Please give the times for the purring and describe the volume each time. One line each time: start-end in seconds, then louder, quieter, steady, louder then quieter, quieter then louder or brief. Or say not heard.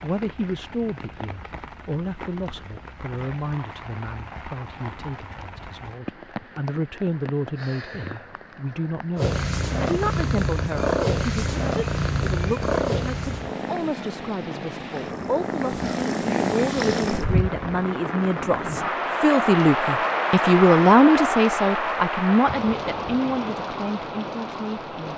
9.2-17.4 quieter then louder.